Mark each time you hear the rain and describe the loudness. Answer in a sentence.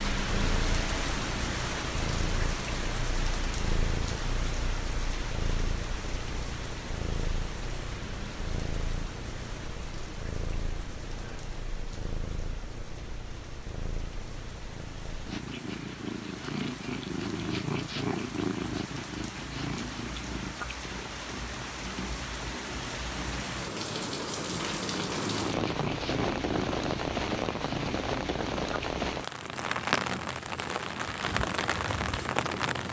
The rain can be heard from 0.0 to 32.8 s, getting quieter then louder.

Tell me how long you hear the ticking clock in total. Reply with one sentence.
The ticking clock can't be heard in this clip.